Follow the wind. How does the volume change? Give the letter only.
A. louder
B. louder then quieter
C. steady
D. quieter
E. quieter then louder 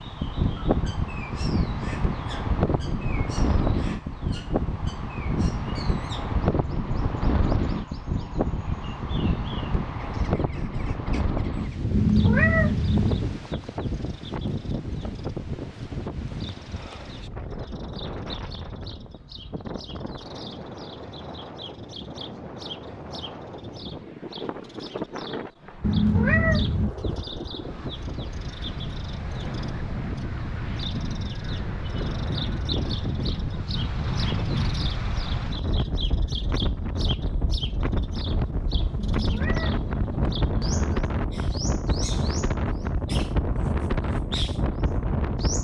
E.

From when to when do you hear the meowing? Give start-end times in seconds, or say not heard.
11.9-13.2, 25.8-26.9, 39.0-41.0.